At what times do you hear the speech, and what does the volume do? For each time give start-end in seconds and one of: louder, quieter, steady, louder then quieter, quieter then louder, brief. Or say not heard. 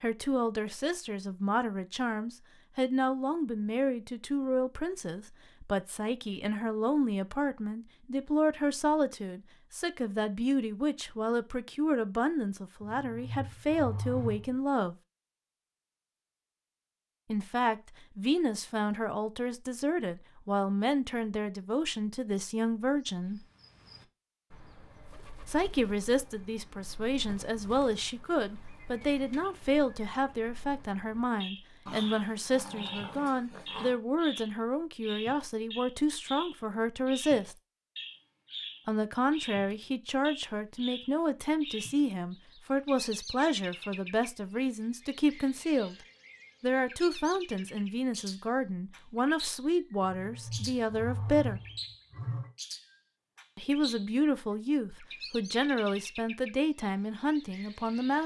0.0-14.9 steady
17.3-23.4 steady
25.4-37.5 steady
38.9-46.0 steady
46.6-51.6 steady
53.5-58.2 steady.